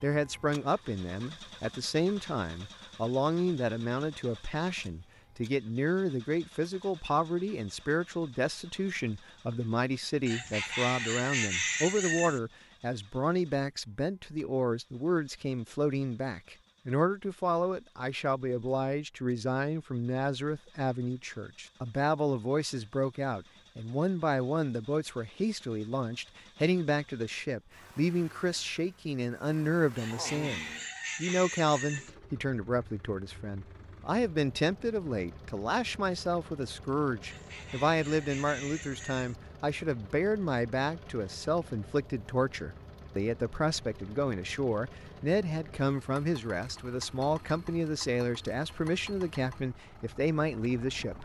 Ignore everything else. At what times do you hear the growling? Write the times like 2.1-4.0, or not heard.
30.1-30.9.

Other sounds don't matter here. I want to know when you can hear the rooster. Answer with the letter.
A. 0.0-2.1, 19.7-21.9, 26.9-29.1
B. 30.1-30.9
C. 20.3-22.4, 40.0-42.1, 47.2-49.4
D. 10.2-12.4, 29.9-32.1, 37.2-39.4
D.